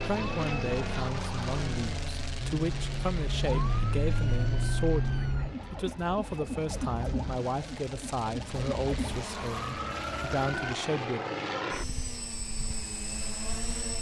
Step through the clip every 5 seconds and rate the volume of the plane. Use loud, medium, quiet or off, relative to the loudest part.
loud, medium, loud.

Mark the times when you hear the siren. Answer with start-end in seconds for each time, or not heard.
0.0-10.5.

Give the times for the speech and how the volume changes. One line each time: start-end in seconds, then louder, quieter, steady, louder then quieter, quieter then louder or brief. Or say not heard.
0.0-11.2 steady.